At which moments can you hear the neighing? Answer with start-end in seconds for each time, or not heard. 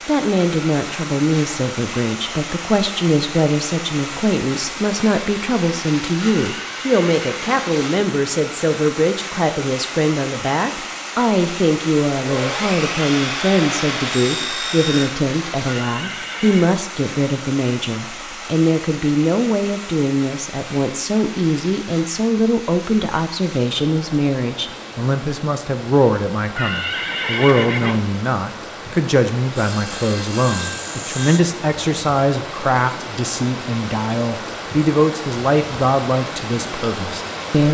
6.2-7.7, 15.7-16.7, 26.6-28.0.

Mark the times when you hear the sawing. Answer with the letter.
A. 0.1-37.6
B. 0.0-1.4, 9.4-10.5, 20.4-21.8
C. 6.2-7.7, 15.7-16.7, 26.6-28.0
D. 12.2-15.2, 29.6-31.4
D.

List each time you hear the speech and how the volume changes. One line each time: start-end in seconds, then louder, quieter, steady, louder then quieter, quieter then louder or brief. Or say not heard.
0.1-37.6 steady.